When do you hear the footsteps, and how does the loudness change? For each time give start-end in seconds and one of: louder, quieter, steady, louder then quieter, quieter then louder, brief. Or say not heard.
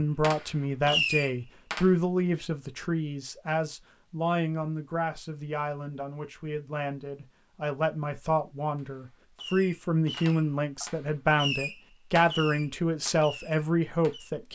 not heard.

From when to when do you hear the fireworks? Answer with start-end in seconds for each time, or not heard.
0.2-1.9, 8.8-14.3.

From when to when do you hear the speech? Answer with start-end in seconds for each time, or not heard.
0.0-14.5.